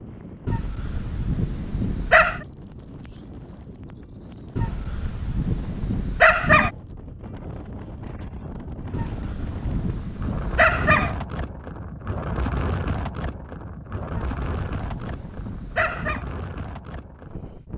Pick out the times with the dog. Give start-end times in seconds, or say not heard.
0.5-2.5, 4.5-6.7, 8.9-11.2, 14.1-16.2.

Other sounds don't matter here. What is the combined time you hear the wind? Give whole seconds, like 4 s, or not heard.
18 s.